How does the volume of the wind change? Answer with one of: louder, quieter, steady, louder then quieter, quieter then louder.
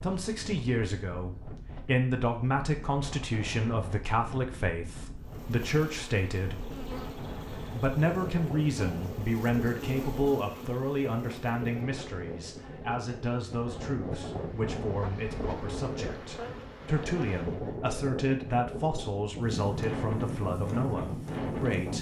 louder.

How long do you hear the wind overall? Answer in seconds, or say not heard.
22 s.